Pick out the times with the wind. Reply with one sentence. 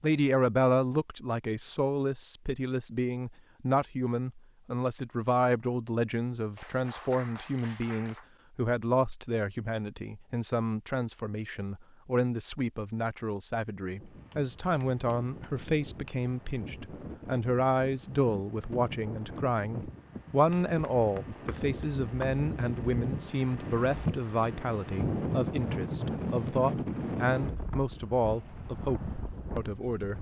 The wind can be heard from 13.9 to 30.1 s.